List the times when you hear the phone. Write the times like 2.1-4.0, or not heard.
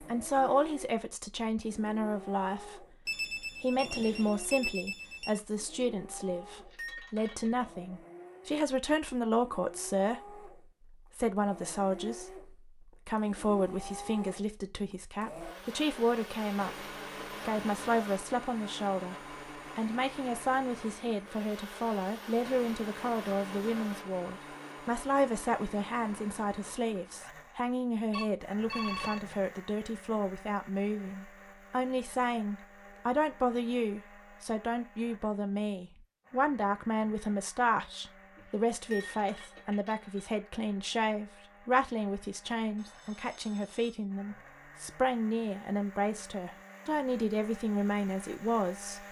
3.0-5.4, 28.1-29.2, 42.8-44.0.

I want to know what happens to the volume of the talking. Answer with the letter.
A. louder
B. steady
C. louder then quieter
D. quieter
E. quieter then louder
B.